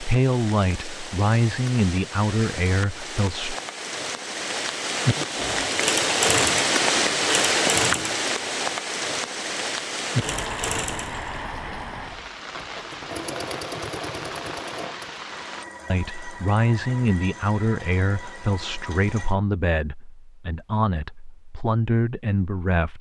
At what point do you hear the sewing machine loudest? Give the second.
6 s.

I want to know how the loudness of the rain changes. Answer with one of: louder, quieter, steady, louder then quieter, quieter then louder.
louder then quieter.